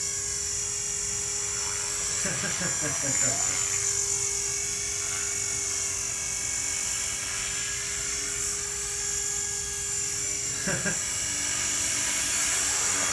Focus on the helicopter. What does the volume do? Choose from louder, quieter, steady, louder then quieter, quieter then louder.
steady.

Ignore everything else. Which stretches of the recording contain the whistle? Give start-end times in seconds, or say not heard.
not heard.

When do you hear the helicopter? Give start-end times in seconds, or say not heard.
0.0-13.0.